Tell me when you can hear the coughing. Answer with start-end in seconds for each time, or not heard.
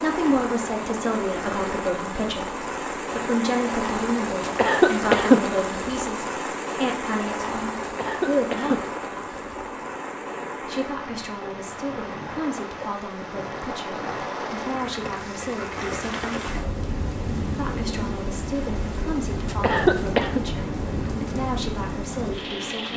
4.5-5.7, 7.8-8.9, 19.4-20.4.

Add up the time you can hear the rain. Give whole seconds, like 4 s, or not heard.
23 s.